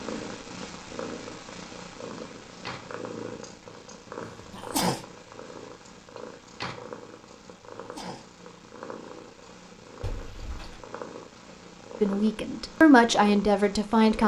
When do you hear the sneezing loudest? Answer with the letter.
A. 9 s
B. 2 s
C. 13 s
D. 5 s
D.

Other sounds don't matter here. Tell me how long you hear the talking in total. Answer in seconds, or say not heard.
2 s.